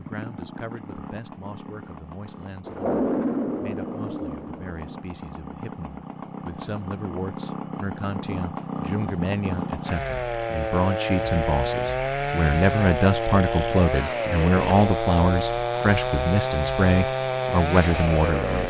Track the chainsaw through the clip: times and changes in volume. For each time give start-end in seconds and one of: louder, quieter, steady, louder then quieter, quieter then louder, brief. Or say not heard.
0.0-18.6 louder.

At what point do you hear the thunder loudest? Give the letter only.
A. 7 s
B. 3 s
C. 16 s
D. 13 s
B.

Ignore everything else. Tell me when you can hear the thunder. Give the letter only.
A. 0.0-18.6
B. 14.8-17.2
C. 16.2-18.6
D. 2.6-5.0
D.